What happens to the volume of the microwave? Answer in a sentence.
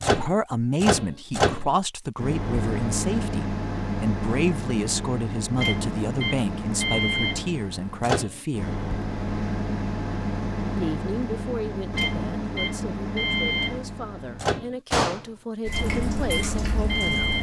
The loudness of the microwave stays about the same.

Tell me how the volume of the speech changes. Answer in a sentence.
The volume of the speech goes down.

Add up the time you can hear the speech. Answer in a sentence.
You can hear the speech for 15 seconds altogether.